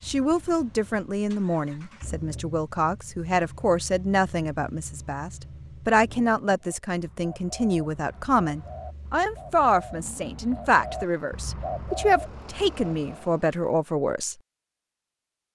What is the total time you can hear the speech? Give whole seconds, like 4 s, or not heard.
14 s.